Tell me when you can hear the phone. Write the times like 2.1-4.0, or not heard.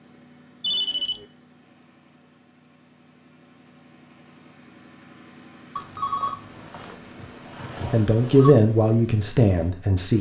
0.6-1.2, 5.8-8.6.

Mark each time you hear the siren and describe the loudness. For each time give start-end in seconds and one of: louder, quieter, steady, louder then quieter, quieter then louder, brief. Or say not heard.
not heard.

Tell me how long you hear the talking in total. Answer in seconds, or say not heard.
2 s.